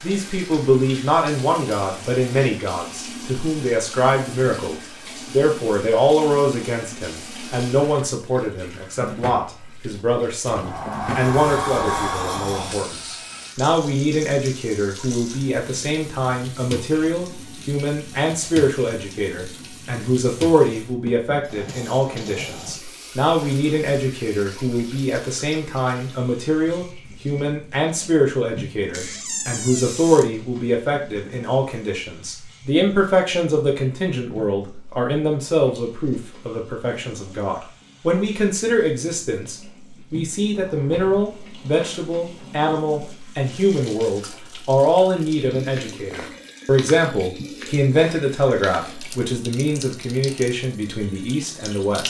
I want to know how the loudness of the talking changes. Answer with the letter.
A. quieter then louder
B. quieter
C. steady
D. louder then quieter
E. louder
C.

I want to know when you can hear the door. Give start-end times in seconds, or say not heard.
10.4-12.8, 28.9-30.3, 40.5-42.5.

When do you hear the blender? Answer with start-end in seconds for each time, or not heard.
not heard.